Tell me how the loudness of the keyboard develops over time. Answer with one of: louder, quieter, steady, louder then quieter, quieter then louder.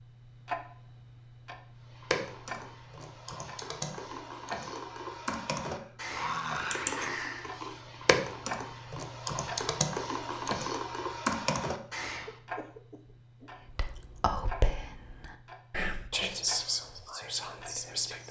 louder.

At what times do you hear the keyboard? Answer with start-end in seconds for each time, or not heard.
1.9-12.3.